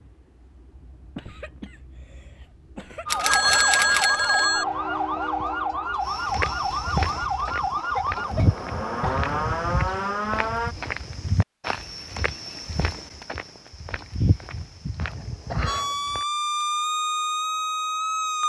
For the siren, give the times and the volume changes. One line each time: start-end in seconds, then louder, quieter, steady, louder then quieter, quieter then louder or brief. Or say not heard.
3.0-10.8 steady
15.7-18.4 brief.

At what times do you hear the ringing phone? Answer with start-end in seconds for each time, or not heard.
3.0-4.7.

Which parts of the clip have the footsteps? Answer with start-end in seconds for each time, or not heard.
6.0-16.2.